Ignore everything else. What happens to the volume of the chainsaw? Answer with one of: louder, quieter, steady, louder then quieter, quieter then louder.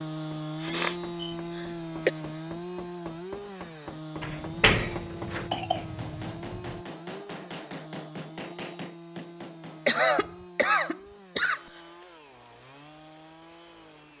quieter.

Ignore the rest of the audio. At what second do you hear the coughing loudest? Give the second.
10 s.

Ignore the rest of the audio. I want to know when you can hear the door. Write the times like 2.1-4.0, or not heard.
4.2-5.5.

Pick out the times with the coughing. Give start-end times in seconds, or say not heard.
0.6-2.1, 5.2-6.8, 9.8-11.6.